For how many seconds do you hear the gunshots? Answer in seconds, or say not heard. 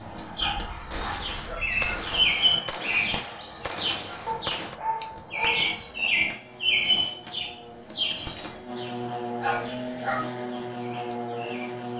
4 s.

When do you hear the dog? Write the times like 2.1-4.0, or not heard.
0.4-2.4, 4.2-6.2, 9.4-10.3.